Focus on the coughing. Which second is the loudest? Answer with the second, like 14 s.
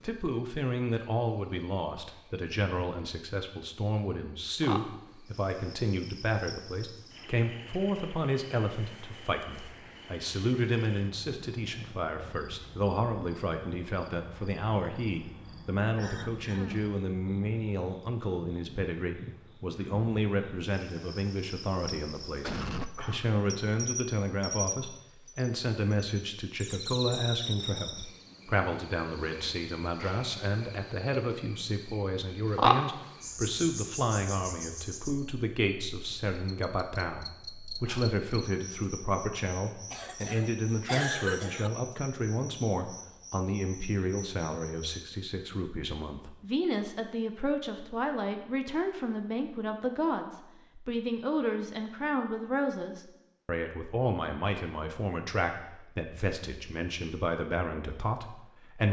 41 s.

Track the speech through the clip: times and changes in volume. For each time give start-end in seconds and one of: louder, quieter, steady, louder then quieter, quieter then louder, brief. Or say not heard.
0.0-58.8 steady.